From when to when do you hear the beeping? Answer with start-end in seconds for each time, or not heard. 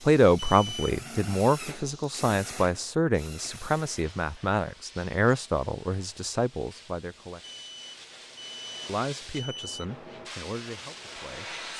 0.3-0.8, 7.4-9.8.